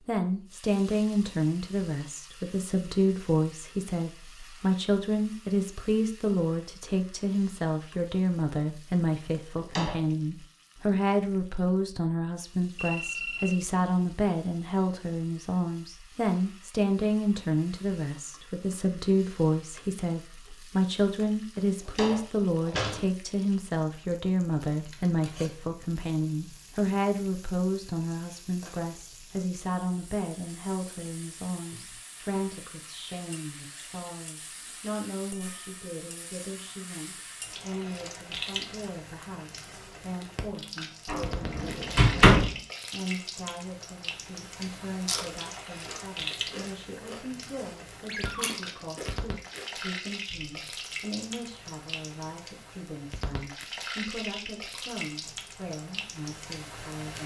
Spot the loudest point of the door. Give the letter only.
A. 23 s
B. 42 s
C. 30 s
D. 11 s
B.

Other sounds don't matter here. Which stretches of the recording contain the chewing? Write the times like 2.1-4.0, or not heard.
45.0-50.5.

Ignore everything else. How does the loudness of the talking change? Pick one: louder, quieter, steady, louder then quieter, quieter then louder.
quieter.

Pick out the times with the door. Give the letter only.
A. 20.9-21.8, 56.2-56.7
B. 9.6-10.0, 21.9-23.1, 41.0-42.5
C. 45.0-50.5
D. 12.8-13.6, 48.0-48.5
B.